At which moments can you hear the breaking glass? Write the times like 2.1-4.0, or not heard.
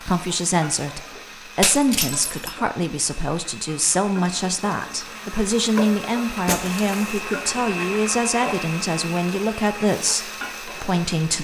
1.6-2.5, 6.5-7.2.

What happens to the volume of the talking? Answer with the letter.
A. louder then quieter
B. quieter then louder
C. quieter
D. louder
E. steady
E.